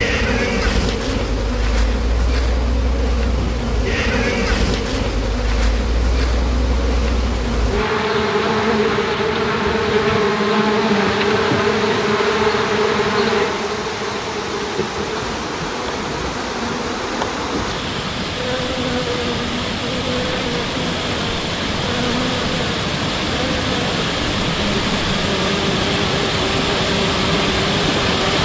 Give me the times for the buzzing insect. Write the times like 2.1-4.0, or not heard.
0.0-28.2.